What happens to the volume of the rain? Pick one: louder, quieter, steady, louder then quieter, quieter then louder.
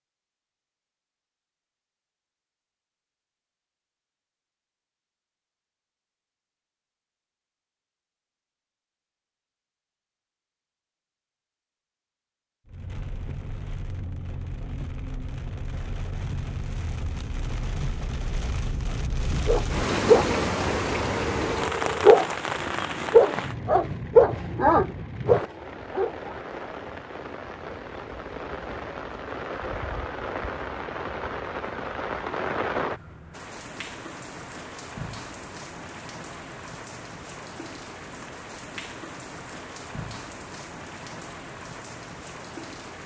louder then quieter.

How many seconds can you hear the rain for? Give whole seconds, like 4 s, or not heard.
30 s.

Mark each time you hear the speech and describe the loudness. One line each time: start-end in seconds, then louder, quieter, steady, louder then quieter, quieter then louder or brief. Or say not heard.
not heard.